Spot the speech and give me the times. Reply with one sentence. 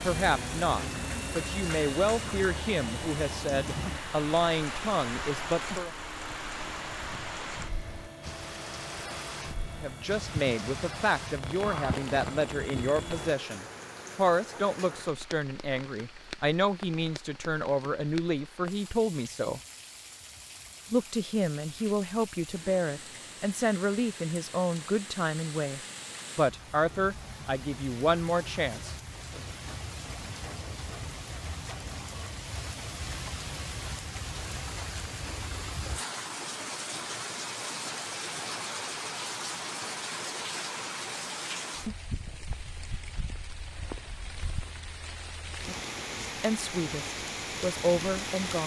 You can hear the speech from 0.1 to 5.9 s, from 9.8 to 19.6 s, from 20.9 to 29.4 s and from 46.4 to 48.6 s.